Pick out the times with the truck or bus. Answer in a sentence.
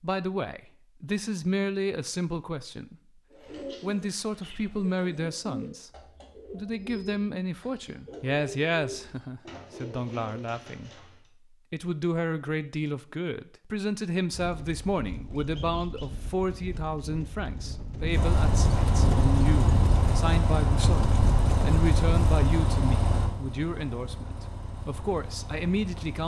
The truck or bus can be heard from 18.1 to 26.2 s.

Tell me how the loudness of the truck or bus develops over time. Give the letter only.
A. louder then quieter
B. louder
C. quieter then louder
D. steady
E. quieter
E.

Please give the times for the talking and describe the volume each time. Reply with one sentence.
The talking can be heard briefly from 0.0 to 3.0 s; briefly from 3.8 to 5.9 s; and from 6.5 to 26.2 s, at a steady volume.